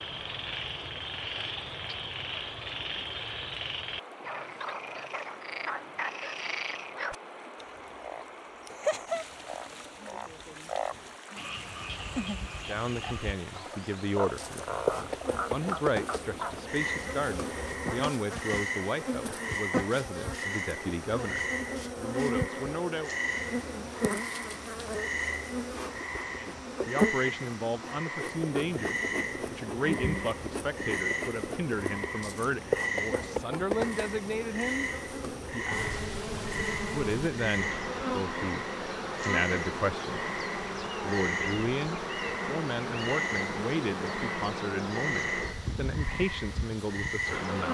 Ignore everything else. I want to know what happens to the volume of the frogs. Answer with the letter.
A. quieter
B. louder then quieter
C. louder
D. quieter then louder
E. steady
E.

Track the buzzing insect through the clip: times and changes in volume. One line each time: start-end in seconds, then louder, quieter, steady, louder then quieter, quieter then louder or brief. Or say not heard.
14.3-47.6 steady.